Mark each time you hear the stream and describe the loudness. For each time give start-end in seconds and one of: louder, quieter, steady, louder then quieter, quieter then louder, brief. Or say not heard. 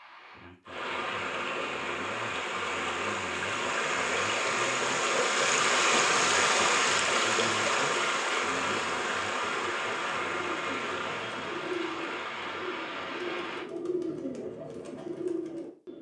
0.0-13.7 louder then quieter.